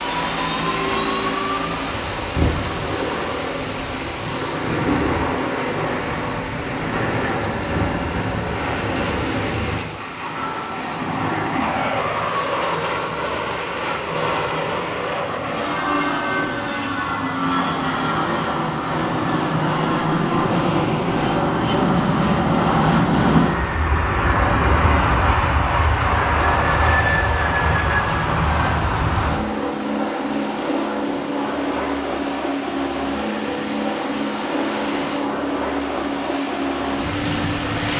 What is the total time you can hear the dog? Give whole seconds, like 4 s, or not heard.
not heard.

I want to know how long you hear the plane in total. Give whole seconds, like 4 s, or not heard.
38 s.